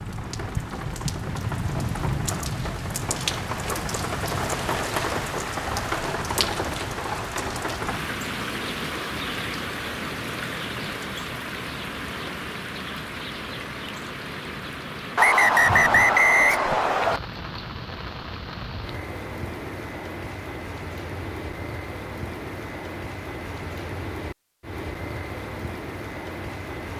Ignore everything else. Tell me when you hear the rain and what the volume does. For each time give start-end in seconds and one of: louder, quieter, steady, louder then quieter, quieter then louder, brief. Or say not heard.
0.0-26.9 quieter.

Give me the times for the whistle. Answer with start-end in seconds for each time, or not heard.
15.2-17.2.